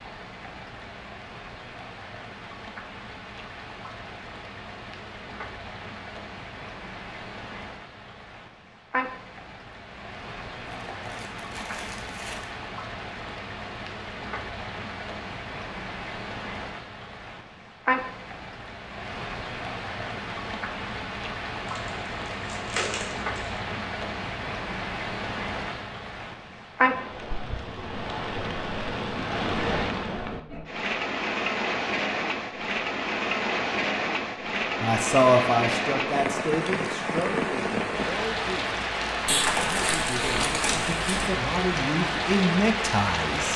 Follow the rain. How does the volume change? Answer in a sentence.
The volume of the rain goes up.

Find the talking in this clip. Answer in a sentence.
The talking can be heard from 34.8 to 43.5 s.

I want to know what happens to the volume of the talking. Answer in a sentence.
The volume of the talking goes down, then up.